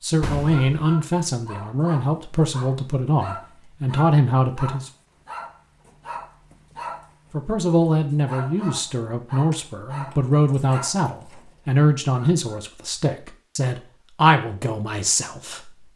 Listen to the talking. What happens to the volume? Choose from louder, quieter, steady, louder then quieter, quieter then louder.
steady.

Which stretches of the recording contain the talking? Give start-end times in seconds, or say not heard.
0.0-4.9, 7.3-15.7.